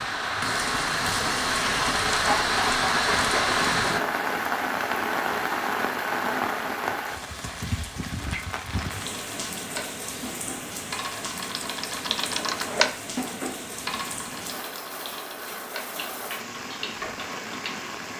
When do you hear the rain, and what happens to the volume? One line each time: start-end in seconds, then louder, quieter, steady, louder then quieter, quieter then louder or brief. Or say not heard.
0.0-18.1 quieter.